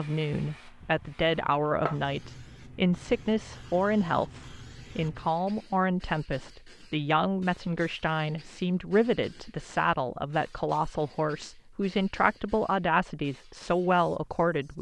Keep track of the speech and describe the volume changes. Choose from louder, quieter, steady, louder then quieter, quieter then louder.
steady.